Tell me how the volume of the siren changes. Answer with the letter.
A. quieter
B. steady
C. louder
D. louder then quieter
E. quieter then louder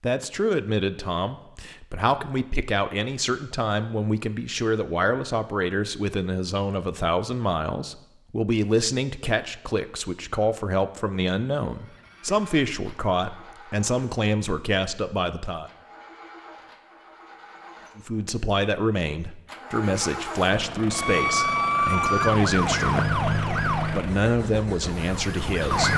A.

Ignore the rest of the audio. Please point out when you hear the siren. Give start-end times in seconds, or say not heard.
20.9-25.9.